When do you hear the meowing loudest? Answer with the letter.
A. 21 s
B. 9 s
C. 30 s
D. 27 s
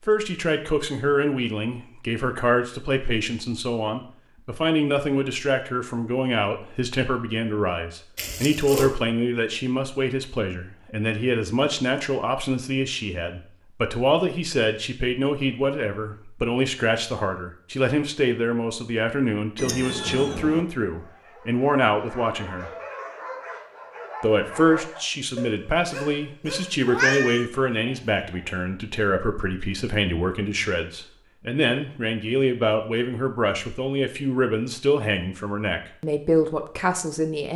D.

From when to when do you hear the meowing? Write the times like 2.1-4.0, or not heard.
8.2-8.9, 19.6-20.6, 26.9-27.4.